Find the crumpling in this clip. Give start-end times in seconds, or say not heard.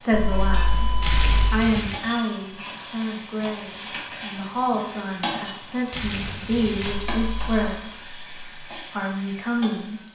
1.0-2.0, 5.9-7.0.